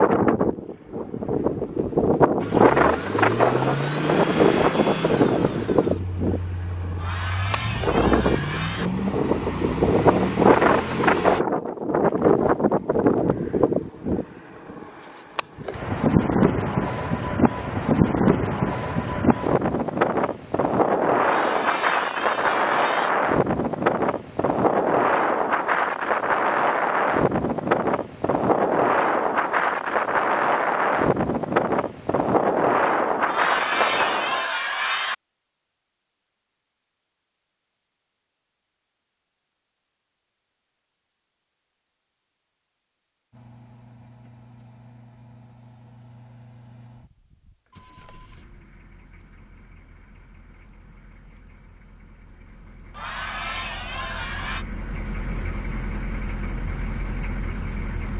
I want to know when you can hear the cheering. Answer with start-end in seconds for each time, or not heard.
7.0-8.9, 21.2-23.1, 33.2-35.1, 52.9-54.6.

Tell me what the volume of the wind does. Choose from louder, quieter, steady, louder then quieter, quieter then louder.
steady.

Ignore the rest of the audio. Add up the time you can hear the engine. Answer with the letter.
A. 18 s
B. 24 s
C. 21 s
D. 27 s
B.